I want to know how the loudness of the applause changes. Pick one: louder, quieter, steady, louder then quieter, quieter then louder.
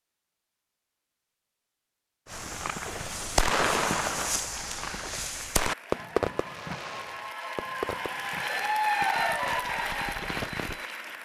louder then quieter.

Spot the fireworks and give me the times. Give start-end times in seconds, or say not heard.
2.3-10.8.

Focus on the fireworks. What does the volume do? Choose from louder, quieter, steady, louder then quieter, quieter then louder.
quieter.